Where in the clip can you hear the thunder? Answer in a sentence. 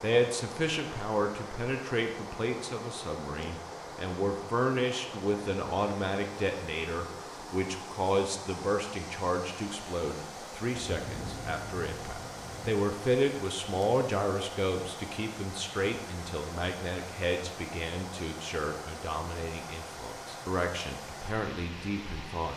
You can hear the thunder from 10.8 to 12.8 s.